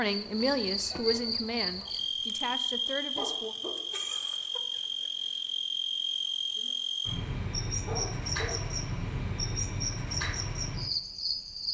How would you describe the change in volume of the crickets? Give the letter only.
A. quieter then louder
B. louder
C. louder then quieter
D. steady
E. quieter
D.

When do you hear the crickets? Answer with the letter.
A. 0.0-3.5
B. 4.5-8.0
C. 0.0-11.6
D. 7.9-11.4
C.